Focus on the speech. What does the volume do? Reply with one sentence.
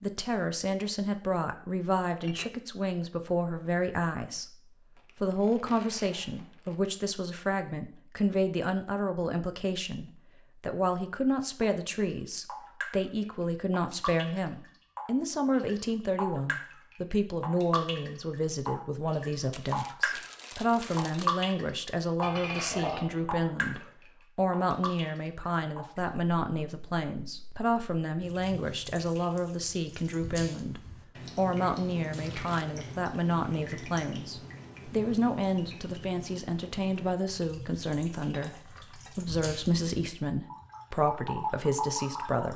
The volume of the speech stays about the same.